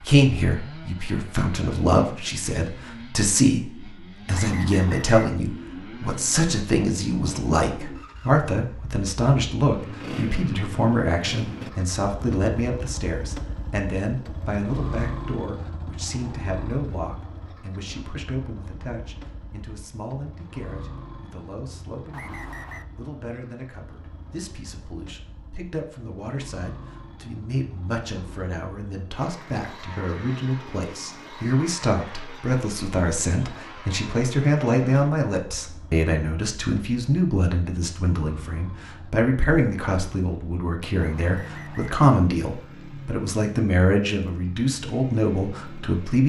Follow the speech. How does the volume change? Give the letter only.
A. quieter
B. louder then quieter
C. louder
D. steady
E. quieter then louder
E.